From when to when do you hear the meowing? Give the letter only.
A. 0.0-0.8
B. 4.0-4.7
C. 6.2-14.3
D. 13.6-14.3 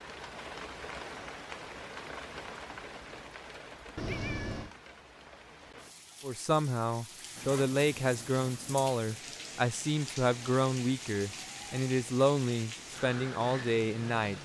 B.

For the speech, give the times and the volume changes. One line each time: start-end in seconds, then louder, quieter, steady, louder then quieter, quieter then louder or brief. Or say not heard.
6.2-14.3 steady.